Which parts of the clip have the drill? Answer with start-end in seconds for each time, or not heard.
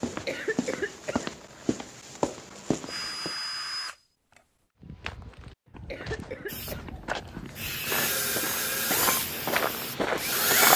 2.9-4.0, 7.5-10.7.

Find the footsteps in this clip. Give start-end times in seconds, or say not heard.
0.0-3.4, 4.8-10.7.